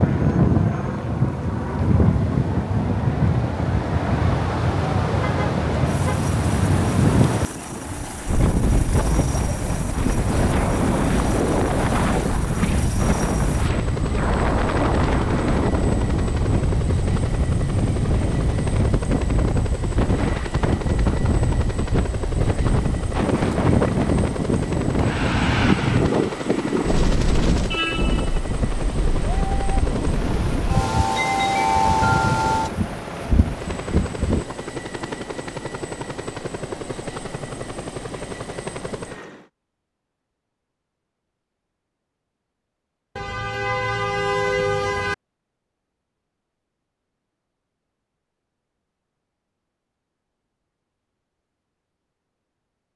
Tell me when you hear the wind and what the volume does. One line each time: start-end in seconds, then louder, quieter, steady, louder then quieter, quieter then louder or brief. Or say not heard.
0.0-34.5 steady.